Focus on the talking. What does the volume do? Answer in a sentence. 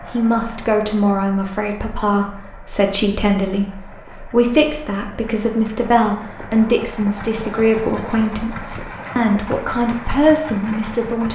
The volume of the talking stays about the same.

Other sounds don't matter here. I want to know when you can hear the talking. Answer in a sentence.
The talking can be heard from 0.0 to 11.2 s.